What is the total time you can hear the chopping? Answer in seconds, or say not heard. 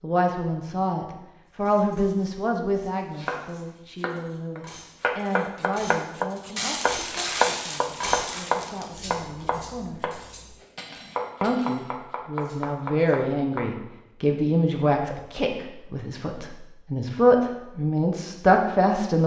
11 s.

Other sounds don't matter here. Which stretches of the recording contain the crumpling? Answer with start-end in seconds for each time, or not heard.
6.5-9.0.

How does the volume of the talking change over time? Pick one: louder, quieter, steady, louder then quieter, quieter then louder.
quieter then louder.